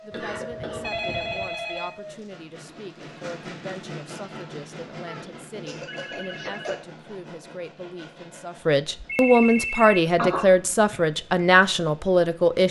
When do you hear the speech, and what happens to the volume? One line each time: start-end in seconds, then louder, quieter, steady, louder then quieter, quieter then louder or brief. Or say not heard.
0.0-12.6 louder.